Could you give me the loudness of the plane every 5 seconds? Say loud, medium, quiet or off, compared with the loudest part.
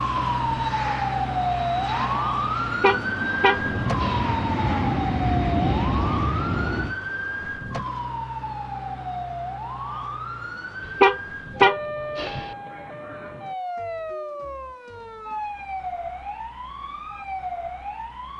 medium, loud, off, off.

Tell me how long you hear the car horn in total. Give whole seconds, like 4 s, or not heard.
3 s.